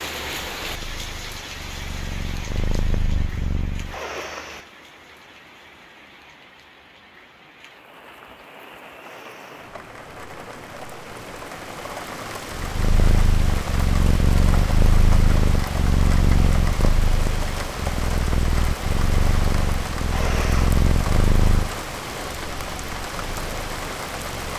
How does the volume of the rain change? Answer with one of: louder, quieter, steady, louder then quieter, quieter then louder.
quieter then louder.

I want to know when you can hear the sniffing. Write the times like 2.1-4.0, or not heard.
3.9-4.7, 8.9-9.7, 20.1-20.8.